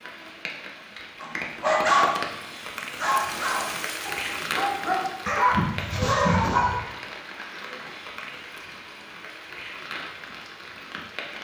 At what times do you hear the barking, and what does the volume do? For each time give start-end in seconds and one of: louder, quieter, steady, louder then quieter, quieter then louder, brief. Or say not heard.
1.2-6.8 quieter then louder.